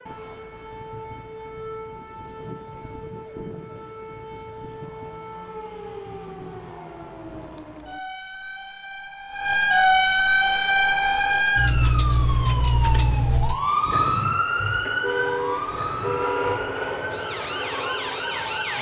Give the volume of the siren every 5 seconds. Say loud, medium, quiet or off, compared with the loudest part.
quiet, medium, loud, medium.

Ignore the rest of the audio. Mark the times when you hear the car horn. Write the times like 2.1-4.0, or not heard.
14.7-16.8.